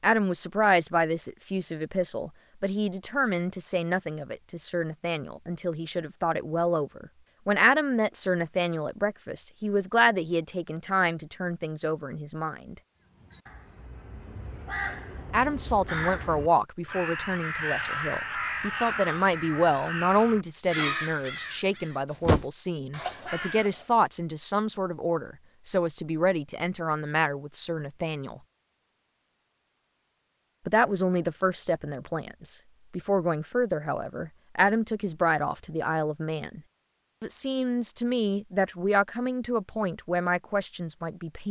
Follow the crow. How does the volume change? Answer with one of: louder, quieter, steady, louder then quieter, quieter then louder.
louder.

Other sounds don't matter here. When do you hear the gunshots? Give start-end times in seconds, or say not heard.
not heard.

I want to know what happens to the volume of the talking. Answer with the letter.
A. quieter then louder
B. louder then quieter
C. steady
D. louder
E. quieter
C.